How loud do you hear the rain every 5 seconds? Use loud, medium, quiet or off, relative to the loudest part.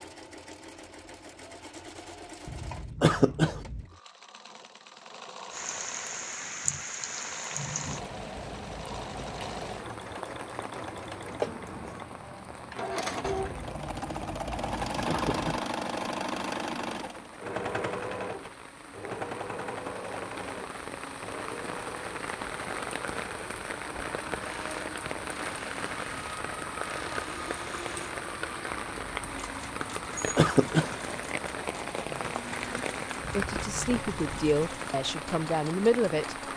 off, loud, medium, medium, loud, loud, loud, loud.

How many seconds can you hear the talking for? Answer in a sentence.
You can hear the talking for 3 seconds altogether.